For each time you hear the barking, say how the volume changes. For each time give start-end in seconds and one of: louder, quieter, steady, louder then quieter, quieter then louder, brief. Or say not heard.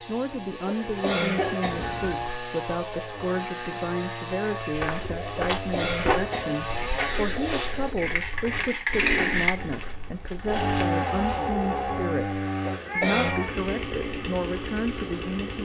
not heard.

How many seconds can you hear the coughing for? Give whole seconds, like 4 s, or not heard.
3 s.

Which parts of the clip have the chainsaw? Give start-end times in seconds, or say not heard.
0.0-15.5.